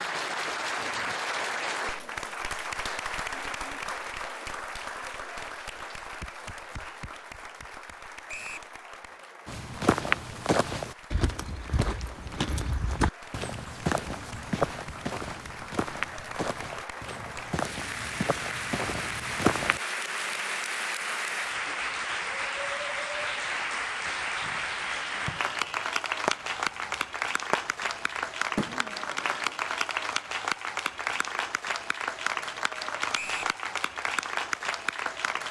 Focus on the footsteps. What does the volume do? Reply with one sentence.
The volume of the footsteps goes down.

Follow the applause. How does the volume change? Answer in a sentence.
The volume of the applause goes down, then up.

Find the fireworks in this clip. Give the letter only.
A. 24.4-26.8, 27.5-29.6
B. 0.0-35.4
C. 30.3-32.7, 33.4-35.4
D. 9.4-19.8
A.